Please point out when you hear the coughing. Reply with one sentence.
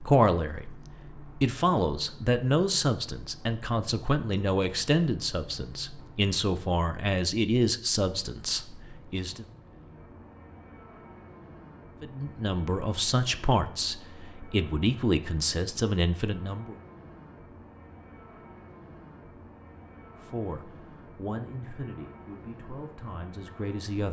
The coughing can't be heard in this clip.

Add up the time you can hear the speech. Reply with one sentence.
You can hear the speech for 18 seconds altogether.